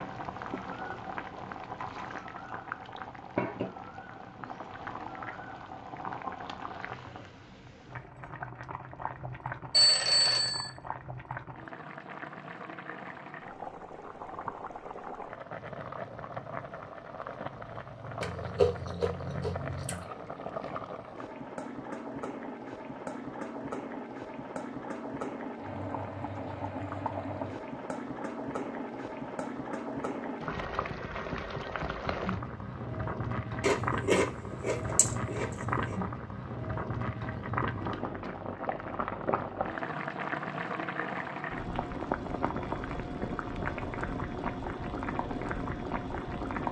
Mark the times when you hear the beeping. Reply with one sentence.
You can hear the beeping from 9.7 to 10.7 s.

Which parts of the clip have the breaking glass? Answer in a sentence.
You can't hear the breaking glass here.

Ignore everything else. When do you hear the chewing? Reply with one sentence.
The chewing can be heard from 18.2 to 20.1 s and from 33.6 to 36.0 s.